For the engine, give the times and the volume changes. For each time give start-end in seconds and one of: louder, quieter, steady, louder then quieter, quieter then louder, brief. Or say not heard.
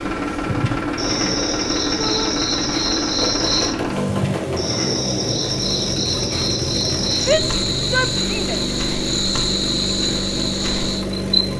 0.0-11.5 steady.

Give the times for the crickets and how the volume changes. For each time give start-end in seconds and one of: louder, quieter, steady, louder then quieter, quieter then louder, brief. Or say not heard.
0.0-11.2 steady.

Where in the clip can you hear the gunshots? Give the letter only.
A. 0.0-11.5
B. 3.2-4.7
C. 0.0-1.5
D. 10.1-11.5
B.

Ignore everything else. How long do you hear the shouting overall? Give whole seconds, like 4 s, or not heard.
2 s.